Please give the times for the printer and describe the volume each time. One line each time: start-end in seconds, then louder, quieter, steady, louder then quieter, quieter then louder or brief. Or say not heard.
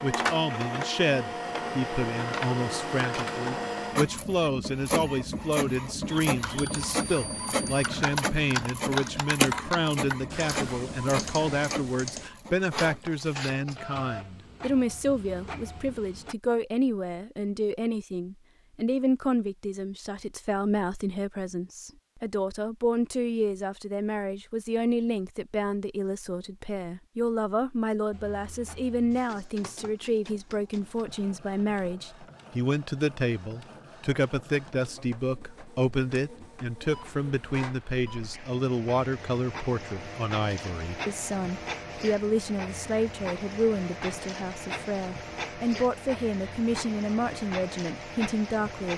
0.0-16.4 quieter
28.1-48.9 louder.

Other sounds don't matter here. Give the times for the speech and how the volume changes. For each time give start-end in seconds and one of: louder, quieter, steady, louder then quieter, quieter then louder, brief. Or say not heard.
0.0-48.9 steady.